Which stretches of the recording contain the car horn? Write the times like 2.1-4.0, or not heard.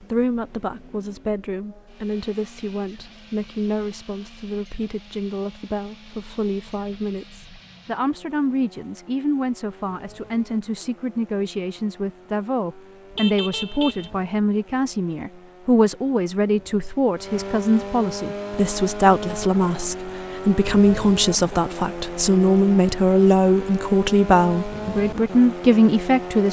13.2-14.2.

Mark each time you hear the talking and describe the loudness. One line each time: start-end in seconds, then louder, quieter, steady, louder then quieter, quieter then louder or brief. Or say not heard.
0.0-26.4 louder.